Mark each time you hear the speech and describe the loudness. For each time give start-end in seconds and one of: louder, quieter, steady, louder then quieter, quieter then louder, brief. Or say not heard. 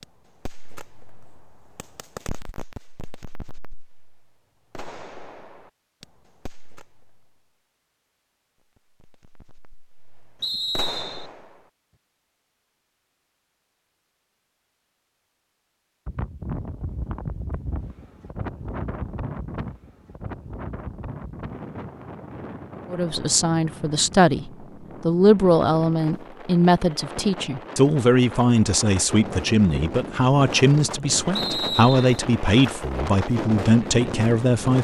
22.9-34.7 steady.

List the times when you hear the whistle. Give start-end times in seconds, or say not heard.
10.4-11.3, 31.4-32.1.